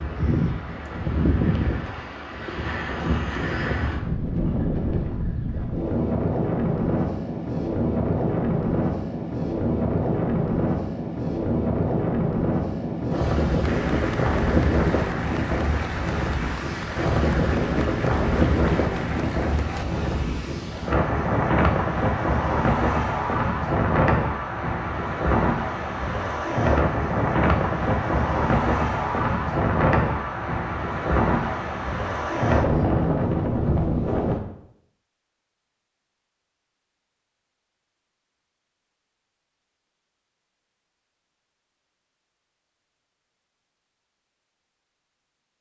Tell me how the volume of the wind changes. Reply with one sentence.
The loudness of the wind stays about the same.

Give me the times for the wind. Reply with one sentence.
The wind can be heard from 0.0 to 34.4 s.